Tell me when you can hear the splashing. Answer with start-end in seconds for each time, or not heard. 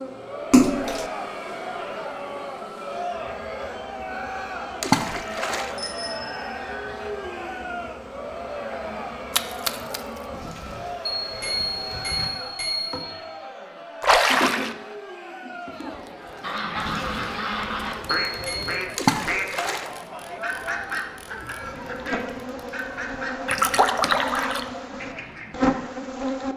0.5-1.1, 4.8-5.8, 9.3-10.0, 14.0-14.8, 18.9-19.9, 23.4-24.6.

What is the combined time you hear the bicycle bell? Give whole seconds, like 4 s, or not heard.
3 s.